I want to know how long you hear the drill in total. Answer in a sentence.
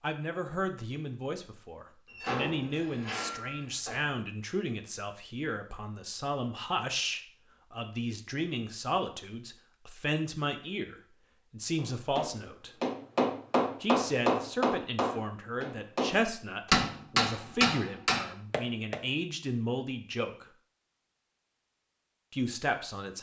The drill can't be heard in this clip.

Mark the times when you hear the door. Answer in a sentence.
The door can be heard from 2.0 to 4.1 s.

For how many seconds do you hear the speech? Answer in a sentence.
The speech can be heard for 20 seconds in total.